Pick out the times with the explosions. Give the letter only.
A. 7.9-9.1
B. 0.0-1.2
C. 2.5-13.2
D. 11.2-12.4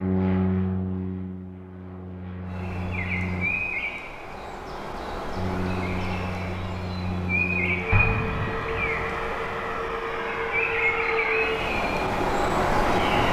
A.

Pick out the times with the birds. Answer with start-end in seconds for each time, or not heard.
2.5-13.2.